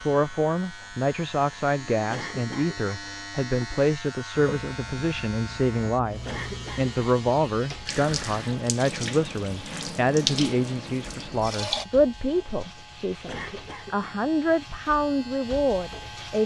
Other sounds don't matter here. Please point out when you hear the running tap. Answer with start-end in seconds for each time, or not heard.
4.3-11.8.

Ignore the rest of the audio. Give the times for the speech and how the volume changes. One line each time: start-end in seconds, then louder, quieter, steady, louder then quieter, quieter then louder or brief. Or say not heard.
0.0-16.4 steady.